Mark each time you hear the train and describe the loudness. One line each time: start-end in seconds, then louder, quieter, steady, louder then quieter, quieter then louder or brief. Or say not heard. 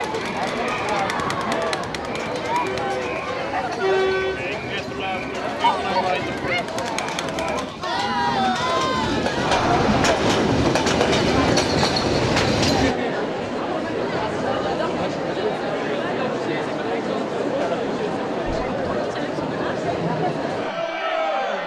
0.0-12.9 louder.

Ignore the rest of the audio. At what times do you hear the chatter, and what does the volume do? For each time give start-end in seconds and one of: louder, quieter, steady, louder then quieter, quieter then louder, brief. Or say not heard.
0.0-21.6 steady.